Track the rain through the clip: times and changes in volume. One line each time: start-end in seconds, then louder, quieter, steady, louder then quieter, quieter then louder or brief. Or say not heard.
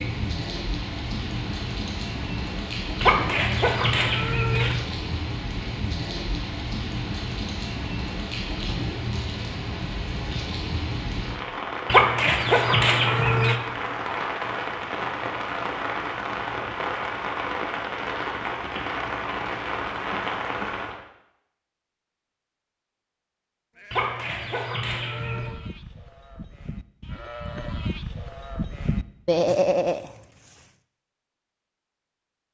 0.0-21.0 steady.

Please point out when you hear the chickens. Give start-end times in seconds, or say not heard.
3.0-4.8, 11.8-13.6, 23.9-25.5.